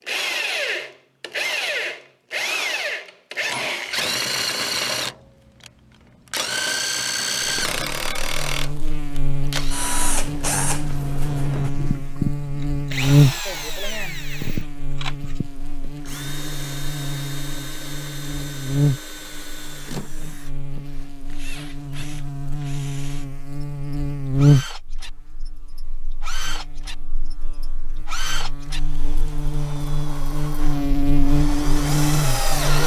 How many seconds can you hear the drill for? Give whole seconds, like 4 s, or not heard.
33 s.